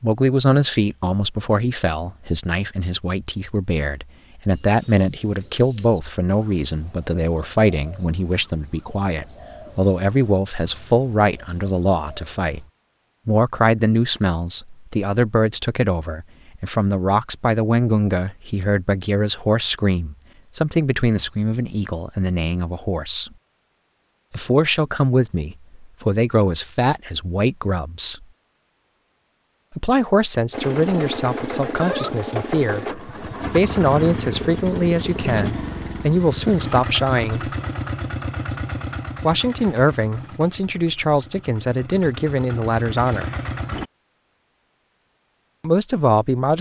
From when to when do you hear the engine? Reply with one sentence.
You can hear the engine from 30.5 to 43.9 s.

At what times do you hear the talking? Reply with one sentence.
You can hear the talking from 0.0 to 12.7 s, from 13.2 to 23.3 s, from 24.3 to 28.2 s, from 29.8 to 37.5 s, from 39.2 to 43.3 s and from 45.6 to 46.5 s.